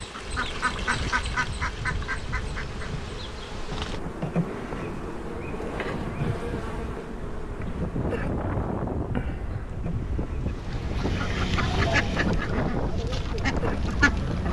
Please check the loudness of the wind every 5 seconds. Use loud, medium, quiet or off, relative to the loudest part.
medium, loud, loud.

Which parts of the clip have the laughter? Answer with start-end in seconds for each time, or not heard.
not heard.